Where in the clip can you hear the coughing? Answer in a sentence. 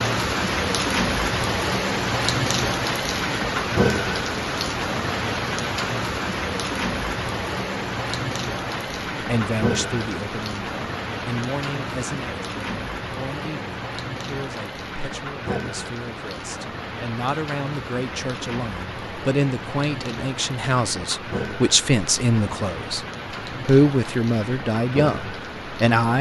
The coughing can't be heard in this clip.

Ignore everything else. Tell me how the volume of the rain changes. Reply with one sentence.
The volume of the rain goes down.